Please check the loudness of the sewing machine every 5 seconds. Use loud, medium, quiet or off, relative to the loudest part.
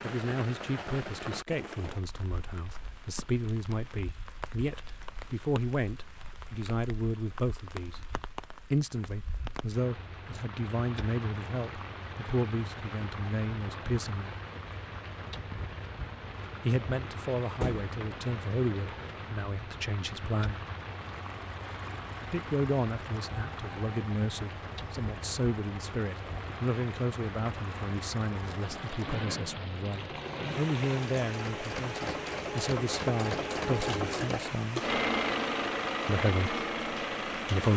off, off, off, off, quiet, quiet, loud, loud.